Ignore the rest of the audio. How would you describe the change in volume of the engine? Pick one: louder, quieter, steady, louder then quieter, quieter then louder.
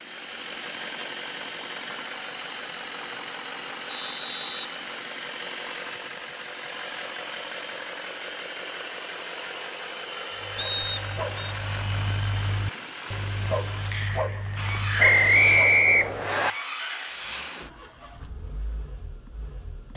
steady.